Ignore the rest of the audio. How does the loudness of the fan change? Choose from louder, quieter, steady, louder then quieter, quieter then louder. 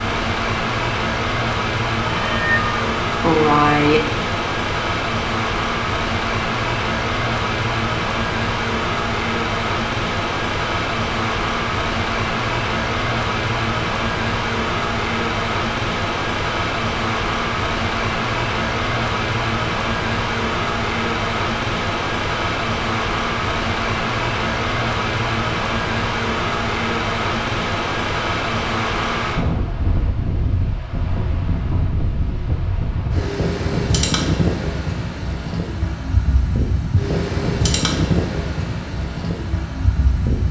steady.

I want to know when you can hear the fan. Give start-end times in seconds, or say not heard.
0.0-40.4.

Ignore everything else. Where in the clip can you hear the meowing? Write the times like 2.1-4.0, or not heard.
2.0-4.0.